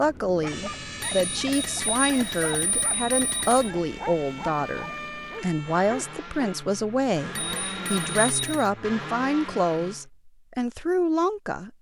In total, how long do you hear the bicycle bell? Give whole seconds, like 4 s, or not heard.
4 s.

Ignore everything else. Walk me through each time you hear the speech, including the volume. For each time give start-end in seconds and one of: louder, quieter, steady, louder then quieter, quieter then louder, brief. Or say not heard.
0.0-11.7 steady.